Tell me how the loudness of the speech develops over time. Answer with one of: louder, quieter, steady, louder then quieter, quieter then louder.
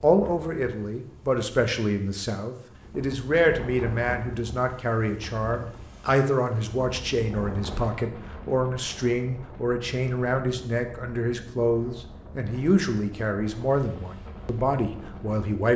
steady.